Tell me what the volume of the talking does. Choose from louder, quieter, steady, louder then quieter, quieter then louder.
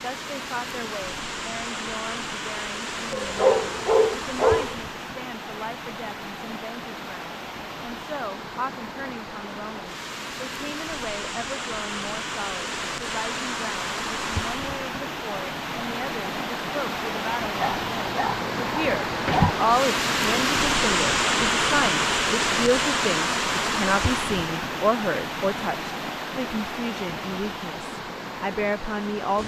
louder.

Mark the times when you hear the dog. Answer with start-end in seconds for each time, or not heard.
3.1-4.8, 17.6-19.6.